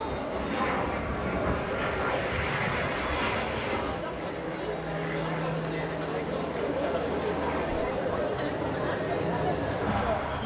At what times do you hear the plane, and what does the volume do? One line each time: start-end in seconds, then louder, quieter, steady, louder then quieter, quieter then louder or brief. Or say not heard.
0.0-10.4 quieter.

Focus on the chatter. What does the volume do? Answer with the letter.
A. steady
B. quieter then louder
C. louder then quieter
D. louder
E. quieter
D.